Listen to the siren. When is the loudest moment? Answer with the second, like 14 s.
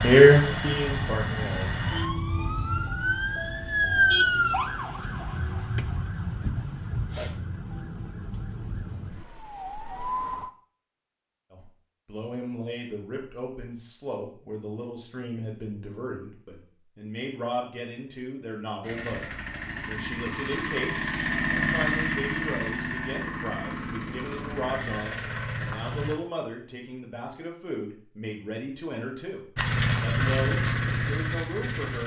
4 s.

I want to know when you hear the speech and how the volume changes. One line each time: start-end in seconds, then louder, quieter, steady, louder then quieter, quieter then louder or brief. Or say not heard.
0.0-1.9 brief
11.5-32.0 steady.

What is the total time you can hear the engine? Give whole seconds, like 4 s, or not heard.
12 s.